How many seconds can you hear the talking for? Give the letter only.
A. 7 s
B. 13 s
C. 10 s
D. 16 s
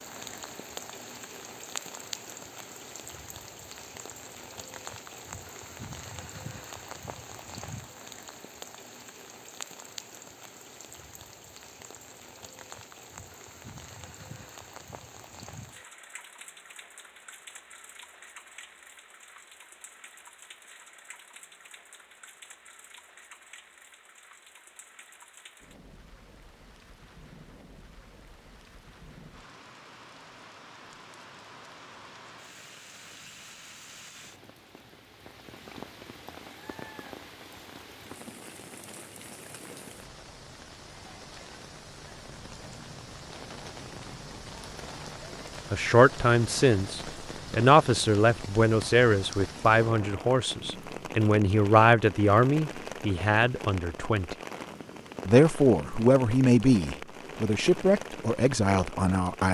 B.